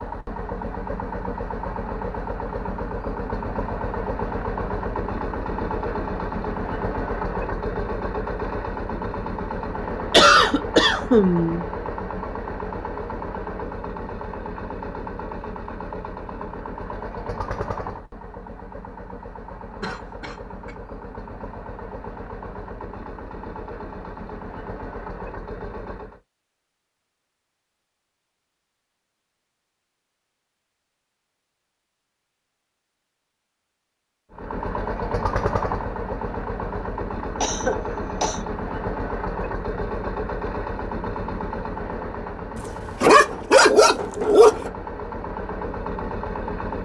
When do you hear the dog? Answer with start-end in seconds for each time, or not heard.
42.5-44.7.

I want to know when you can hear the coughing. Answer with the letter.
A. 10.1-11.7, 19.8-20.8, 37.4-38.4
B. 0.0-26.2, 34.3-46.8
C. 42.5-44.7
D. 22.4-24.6
A.